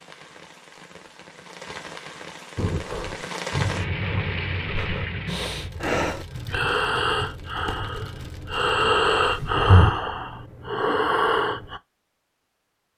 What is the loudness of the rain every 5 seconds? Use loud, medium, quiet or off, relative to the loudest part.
loud, medium, off.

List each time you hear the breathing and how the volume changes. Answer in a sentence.
You can hear the breathing from 2.5 to 11.8 s, getting louder.